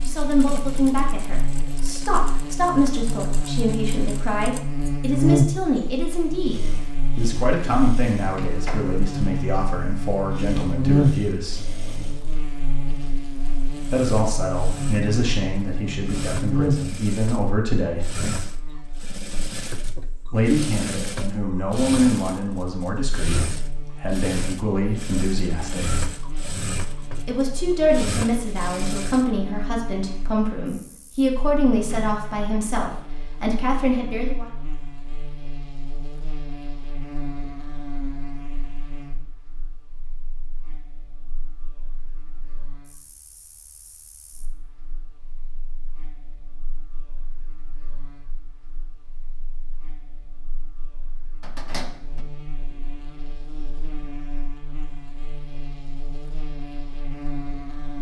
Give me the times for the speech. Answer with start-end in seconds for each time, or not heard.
0.1-11.7, 13.9-18.1, 20.3-26.0, 27.2-34.5.